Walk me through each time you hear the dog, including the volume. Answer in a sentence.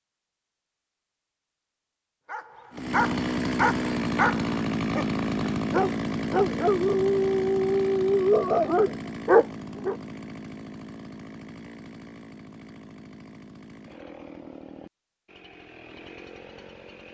The dog can be heard from 2.3 to 9.9 s, getting louder.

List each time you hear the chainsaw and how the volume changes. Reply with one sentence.
You can hear the chainsaw from 2.7 to 17.0 s, getting quieter.